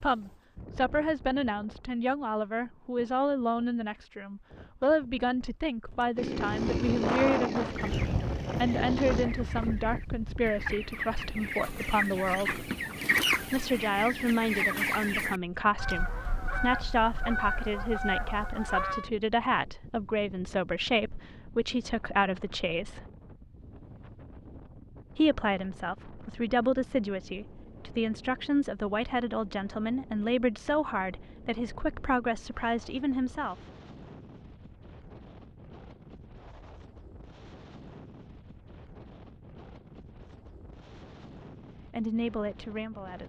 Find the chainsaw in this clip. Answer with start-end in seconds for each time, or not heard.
6.2-9.2.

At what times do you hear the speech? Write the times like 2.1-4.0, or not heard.
0.0-12.7, 13.5-23.1, 25.1-33.5, 41.9-43.2.